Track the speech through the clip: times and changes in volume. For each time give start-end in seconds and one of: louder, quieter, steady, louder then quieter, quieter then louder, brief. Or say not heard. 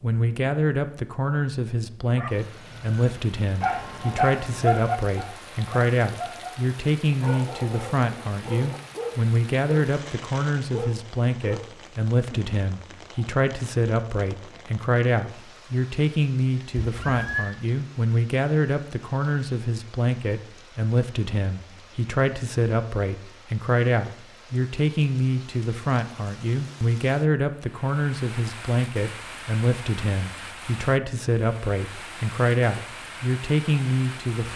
0.0-34.5 steady.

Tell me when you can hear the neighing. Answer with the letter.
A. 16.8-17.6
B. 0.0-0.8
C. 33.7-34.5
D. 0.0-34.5
A.